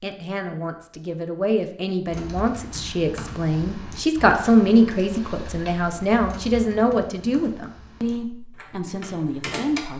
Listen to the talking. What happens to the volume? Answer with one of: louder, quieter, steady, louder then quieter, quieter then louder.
louder then quieter.